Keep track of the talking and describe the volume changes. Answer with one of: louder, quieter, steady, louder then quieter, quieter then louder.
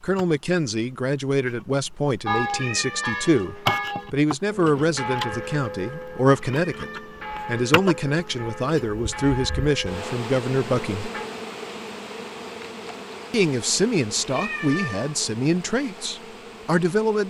steady.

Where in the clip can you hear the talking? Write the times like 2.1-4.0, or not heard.
0.0-11.1, 13.3-17.2.